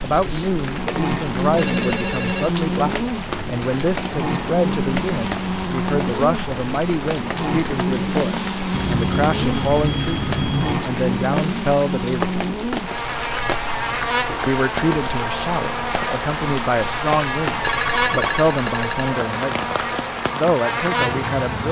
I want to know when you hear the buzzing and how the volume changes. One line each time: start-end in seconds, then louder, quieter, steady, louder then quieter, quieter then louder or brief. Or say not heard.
0.0-21.6 steady.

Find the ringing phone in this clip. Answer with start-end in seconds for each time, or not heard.
1.6-2.5, 8.7-10.8, 17.6-19.1.